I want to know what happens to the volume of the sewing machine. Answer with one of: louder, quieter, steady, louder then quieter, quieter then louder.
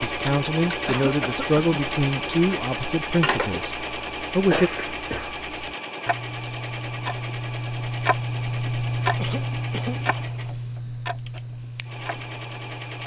quieter.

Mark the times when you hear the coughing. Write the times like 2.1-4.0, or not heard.
0.8-1.8, 4.5-5.3, 9.2-10.0.